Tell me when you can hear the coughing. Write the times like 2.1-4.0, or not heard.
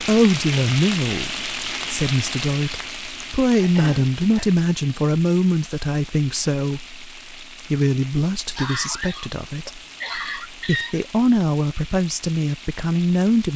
3.5-4.5, 8.6-11.0.